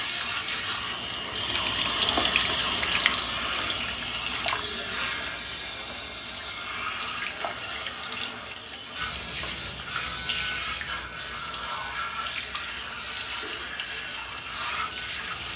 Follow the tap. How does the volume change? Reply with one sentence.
The loudness of the tap goes down.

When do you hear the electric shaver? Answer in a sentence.
The electric shaver can be heard from 8.9 to 15.5 s.